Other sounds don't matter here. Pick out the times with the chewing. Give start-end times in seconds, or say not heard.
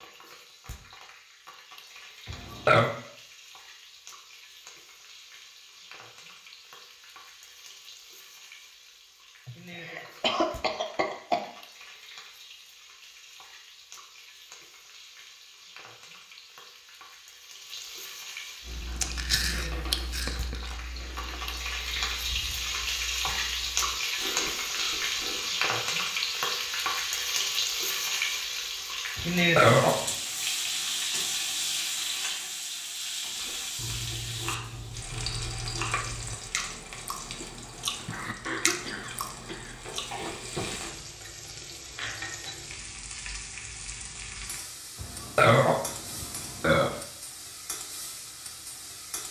18.6-25.5, 33.4-40.1.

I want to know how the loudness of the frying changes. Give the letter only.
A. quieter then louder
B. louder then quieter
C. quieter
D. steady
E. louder
B.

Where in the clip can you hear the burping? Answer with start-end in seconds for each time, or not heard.
2.2-2.9, 29.1-30.1, 45.0-47.0.